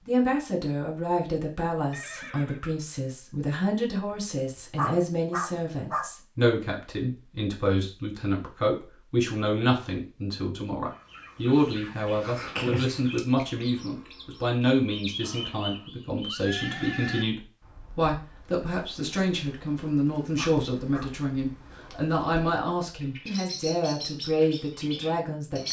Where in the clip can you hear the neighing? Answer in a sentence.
The neighing can be heard from 1.9 to 2.8 s and from 15.2 to 17.2 s.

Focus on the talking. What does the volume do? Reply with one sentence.
The volume of the talking stays about the same.